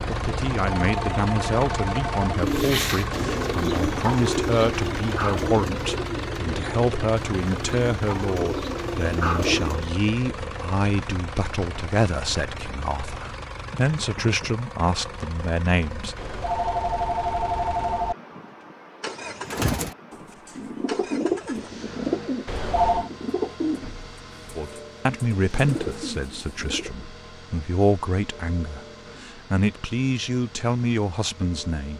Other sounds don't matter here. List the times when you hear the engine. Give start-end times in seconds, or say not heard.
0.0-31.9.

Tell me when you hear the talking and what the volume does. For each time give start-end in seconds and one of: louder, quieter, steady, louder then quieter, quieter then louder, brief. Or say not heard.
0.1-16.1 steady
24.6-31.9 quieter then louder.